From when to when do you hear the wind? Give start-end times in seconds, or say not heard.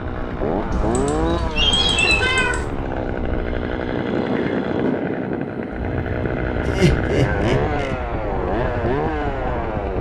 0.0-9.9.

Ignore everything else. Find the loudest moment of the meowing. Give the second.
2 s.